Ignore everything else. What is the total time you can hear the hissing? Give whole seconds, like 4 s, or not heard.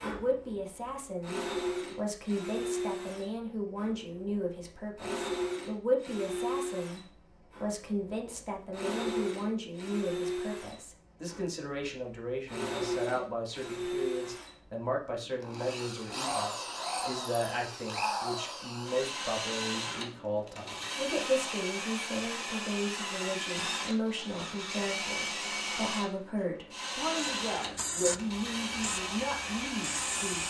3 s.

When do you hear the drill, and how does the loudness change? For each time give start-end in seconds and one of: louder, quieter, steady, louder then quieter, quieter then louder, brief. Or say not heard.
0.0-30.4 steady.